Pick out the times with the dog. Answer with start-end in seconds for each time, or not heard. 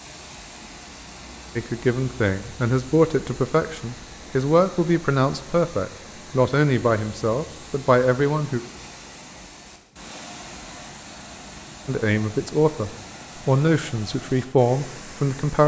not heard.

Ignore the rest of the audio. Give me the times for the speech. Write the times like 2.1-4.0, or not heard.
1.6-8.6, 11.8-15.6.